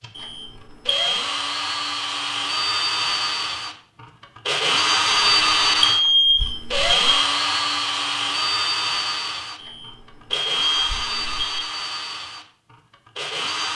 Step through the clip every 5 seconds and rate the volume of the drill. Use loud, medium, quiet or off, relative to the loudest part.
loud, loud, medium.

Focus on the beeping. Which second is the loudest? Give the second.
6 s.